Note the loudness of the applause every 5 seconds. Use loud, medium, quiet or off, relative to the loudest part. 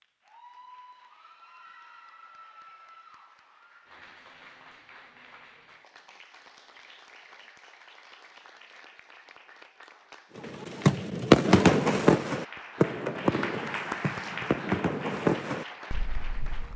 quiet, quiet, loud, medium.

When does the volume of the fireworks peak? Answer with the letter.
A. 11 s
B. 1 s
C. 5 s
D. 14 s
A.